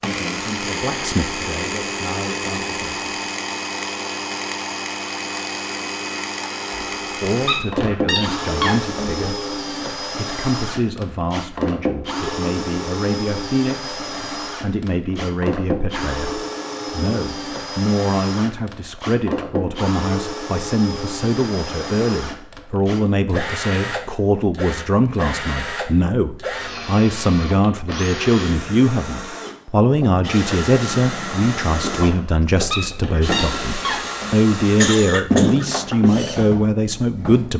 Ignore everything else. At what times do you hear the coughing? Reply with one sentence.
The coughing can be heard from 34.6 to 35.7 s.